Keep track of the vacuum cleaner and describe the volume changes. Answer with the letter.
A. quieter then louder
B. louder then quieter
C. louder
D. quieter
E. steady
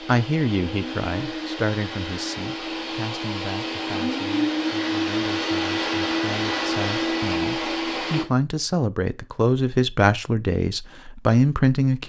C.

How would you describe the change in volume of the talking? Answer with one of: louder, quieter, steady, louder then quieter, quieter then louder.
quieter then louder.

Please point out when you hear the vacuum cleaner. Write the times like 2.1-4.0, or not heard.
0.0-8.2.